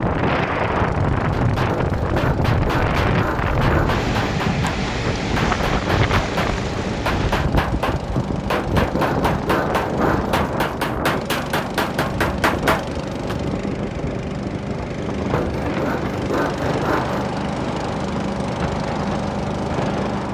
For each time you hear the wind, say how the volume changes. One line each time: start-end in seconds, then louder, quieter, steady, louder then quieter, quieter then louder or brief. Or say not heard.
0.0-20.2 quieter.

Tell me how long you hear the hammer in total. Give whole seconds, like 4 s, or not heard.
12 s.